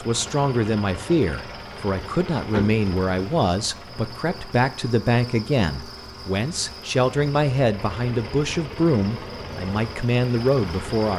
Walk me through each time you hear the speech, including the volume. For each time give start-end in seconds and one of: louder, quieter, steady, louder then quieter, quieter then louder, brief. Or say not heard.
0.0-11.1 steady.